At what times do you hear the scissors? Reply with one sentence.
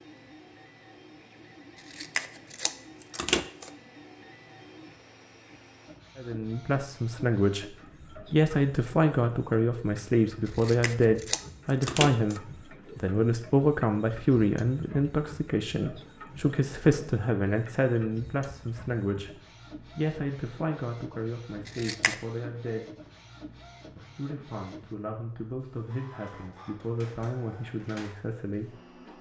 You can hear the scissors from 1.9 to 3.7 s, from 10.4 to 12.4 s and from 21.6 to 22.1 s.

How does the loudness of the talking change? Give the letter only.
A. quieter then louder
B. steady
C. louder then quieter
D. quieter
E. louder
D.